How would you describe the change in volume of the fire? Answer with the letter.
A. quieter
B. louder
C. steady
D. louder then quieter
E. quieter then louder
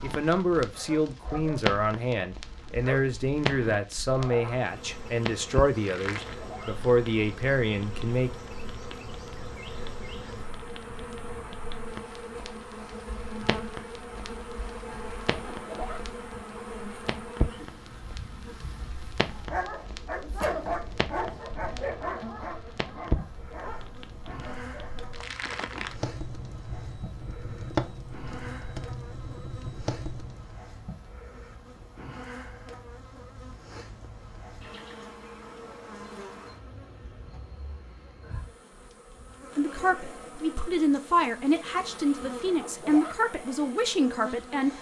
E.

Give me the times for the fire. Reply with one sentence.
You can hear the fire from 0.0 to 30.6 s.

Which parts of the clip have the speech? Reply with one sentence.
You can hear the speech from 0.0 to 8.3 s and from 39.5 to 44.7 s.